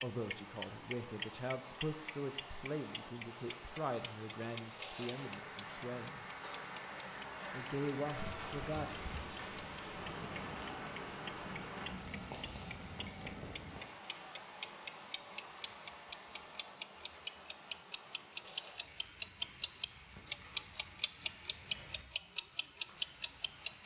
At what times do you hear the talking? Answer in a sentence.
You can hear the talking from 0.0 to 6.2 s and from 7.5 to 8.9 s.